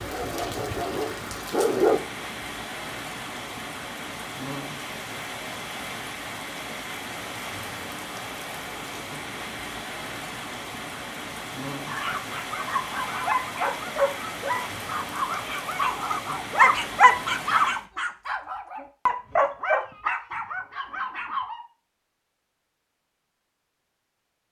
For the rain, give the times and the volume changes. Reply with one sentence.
You can hear the rain from 0.0 to 17.9 s, at a steady volume.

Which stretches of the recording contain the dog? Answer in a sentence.
The dog can be heard from 0.0 to 2.0 s and from 11.8 to 21.6 s.